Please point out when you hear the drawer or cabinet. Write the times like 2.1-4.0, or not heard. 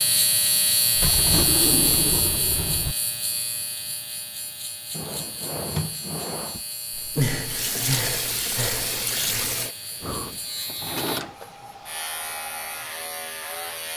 0.9-3.0, 4.9-6.6, 10.7-11.3.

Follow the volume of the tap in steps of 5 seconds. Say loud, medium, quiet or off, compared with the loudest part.
off, loud, quiet.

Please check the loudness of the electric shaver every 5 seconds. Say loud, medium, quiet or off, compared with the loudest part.
loud, medium, medium.